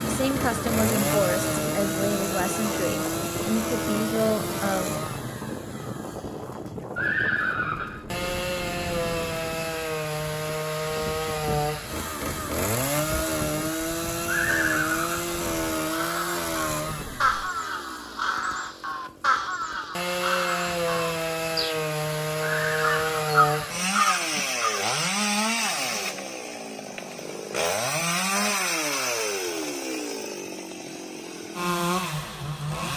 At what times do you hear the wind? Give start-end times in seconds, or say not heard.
0.0-17.4.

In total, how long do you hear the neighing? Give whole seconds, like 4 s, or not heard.
3 s.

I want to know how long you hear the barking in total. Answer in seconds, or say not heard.
not heard.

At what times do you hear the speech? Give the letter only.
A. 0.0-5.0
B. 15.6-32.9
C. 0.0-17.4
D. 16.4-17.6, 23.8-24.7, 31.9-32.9
A.